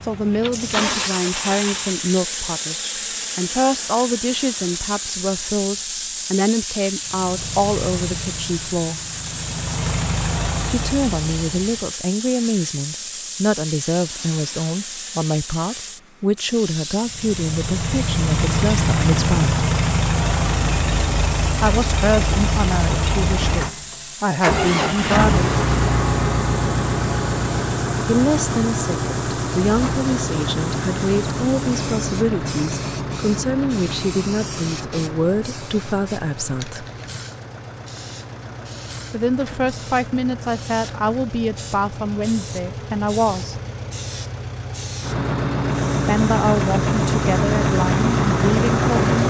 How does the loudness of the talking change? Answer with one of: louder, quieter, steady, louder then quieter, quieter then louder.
steady.